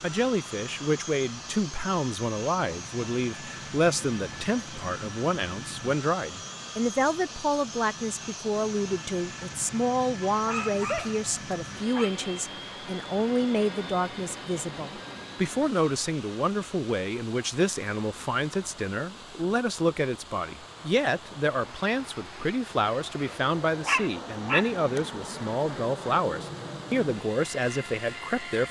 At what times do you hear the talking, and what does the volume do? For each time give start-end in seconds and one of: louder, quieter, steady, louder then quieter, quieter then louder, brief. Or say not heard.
0.0-28.6 steady.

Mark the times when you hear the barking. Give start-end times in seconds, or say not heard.
10.3-12.1, 23.9-25.0.